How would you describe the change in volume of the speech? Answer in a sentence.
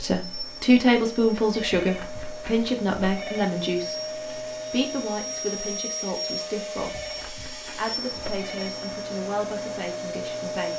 The volume of the speech goes down.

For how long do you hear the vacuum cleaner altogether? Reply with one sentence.
The vacuum cleaner can be heard for 11 seconds in total.